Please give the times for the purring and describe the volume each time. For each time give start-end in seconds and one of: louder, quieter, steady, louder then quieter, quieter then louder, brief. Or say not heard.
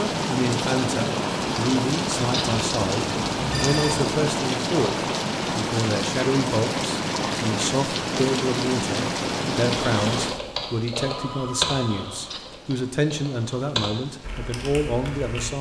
not heard.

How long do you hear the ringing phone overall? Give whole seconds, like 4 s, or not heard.
2 s.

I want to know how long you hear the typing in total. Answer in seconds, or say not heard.
6 s.